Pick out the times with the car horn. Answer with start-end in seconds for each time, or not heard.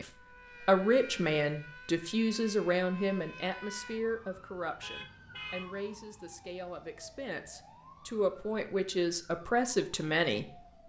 4.8-5.7.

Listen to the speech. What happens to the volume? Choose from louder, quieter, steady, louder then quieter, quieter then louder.
quieter then louder.